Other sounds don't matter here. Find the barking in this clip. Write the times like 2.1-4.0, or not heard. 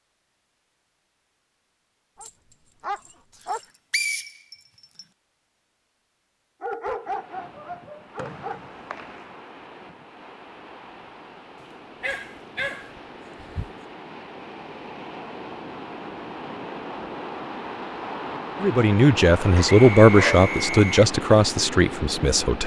2.2-3.6, 6.6-8.6, 12.0-13.7, 19.6-20.4.